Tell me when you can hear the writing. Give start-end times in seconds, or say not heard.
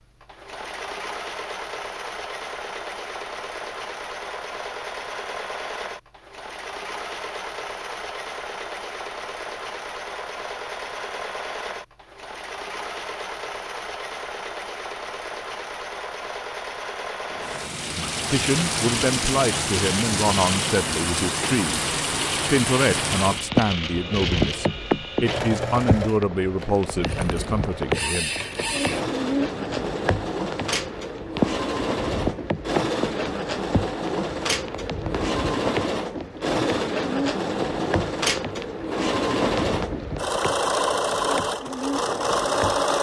not heard.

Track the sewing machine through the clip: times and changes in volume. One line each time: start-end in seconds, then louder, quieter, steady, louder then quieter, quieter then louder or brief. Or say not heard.
0.0-42.9 louder.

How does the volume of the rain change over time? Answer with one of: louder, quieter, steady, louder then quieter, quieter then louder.
quieter.